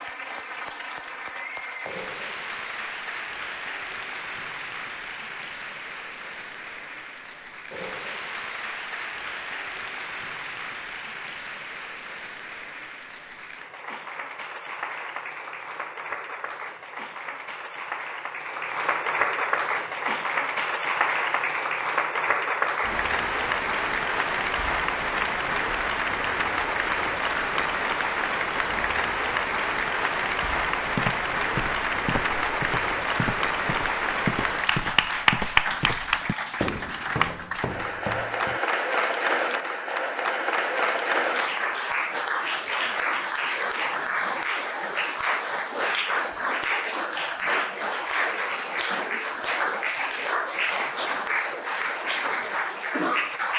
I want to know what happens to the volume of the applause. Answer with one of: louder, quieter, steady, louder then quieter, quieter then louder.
louder.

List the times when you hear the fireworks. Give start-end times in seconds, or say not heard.
not heard.